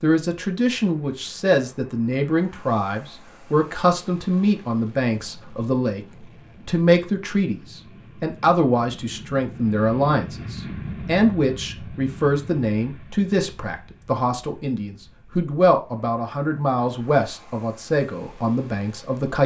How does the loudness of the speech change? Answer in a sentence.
The loudness of the speech stays about the same.